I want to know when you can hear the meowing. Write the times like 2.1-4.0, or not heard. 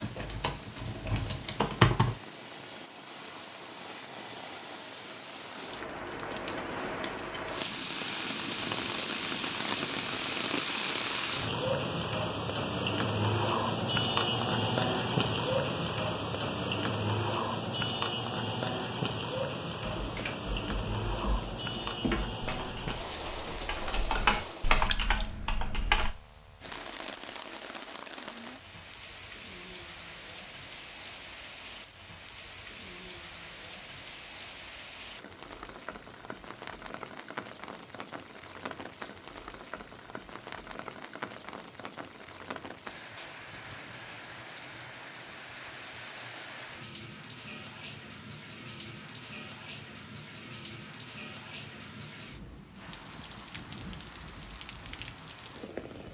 not heard.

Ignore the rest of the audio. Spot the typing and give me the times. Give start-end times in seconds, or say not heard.
0.0-2.1, 19.8-26.1.